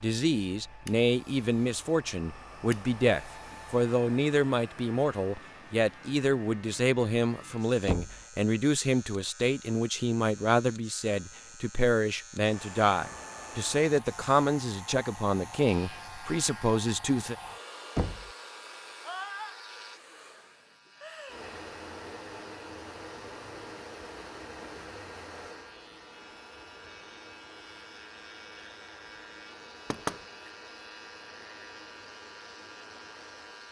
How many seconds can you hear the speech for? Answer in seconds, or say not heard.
17 s.